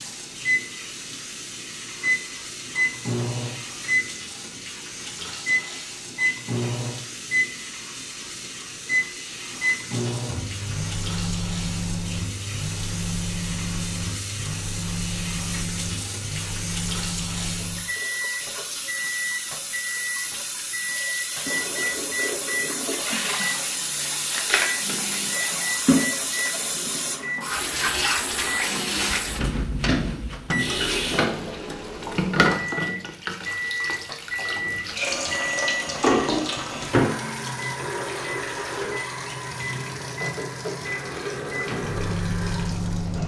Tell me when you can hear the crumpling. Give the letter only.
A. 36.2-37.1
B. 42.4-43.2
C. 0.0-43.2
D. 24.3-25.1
D.